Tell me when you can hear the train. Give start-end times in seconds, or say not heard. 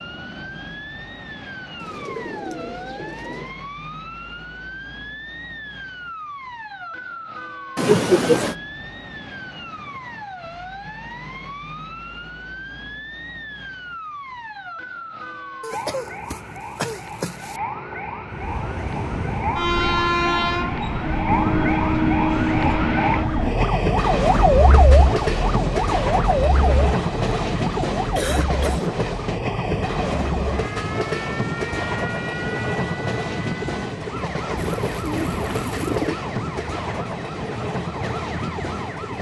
18.3-39.1.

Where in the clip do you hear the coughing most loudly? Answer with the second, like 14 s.
8 s.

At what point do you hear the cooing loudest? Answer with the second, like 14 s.
36 s.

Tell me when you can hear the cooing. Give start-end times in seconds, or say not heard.
1.8-3.5, 34.5-36.2.